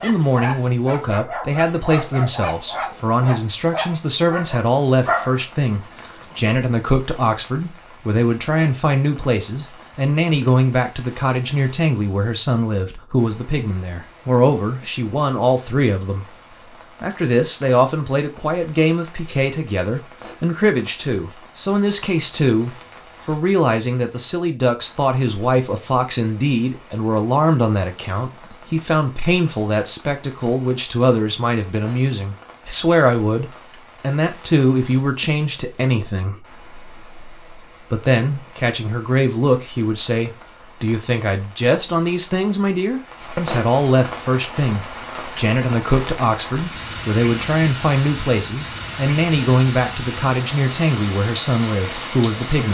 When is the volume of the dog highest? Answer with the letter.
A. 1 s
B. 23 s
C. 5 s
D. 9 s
C.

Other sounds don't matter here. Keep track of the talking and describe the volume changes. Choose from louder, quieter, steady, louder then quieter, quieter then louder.
steady.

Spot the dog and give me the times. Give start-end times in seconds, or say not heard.
0.0-6.4.